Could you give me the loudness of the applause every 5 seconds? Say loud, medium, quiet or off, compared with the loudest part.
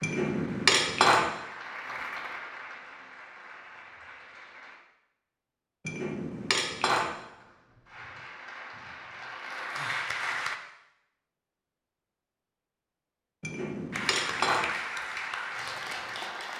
medium, medium, loud, loud.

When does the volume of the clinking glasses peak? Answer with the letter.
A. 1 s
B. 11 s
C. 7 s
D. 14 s
A.